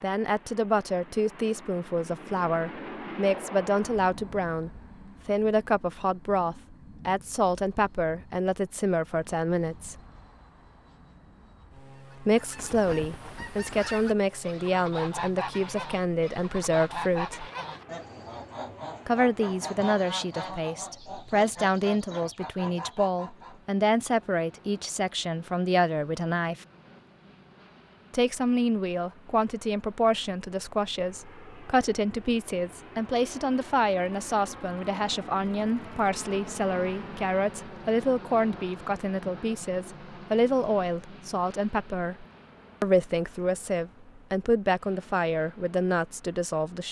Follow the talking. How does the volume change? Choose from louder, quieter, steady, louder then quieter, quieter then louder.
steady.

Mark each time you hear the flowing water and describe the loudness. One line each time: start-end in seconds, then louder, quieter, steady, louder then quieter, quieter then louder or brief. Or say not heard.
not heard.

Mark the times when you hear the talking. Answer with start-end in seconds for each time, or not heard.
0.0-9.9, 12.2-17.4, 19.1-26.6, 28.1-46.8.